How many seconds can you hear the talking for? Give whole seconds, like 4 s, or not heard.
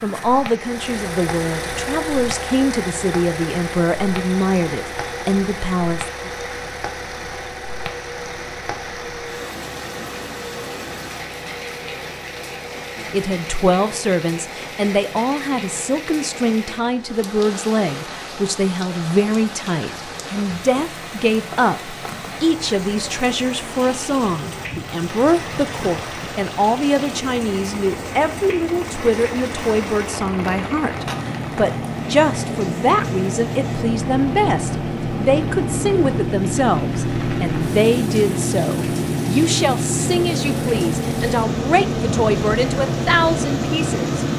37 s.